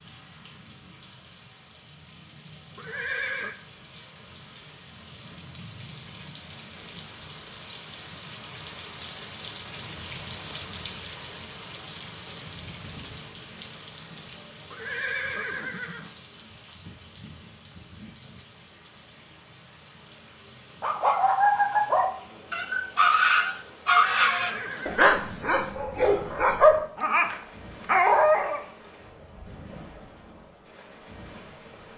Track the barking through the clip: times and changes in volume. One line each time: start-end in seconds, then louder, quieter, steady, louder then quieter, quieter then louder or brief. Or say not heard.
20.8-28.6 steady.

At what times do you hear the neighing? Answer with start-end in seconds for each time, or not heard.
2.8-3.5, 14.7-16.1, 23.9-25.3.